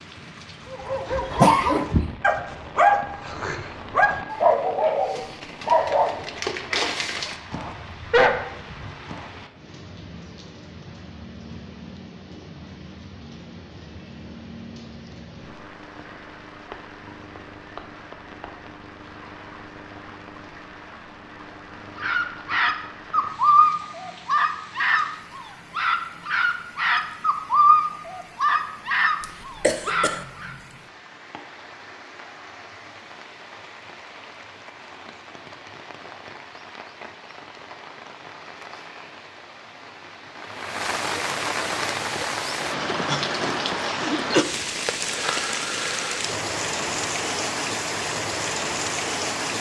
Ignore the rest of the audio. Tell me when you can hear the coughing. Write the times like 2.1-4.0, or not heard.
1.4-2.1, 29.2-30.2, 43.0-44.5.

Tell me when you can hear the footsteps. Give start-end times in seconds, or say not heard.
not heard.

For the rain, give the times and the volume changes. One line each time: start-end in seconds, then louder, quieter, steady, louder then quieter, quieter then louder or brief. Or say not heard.
0.0-49.5 louder.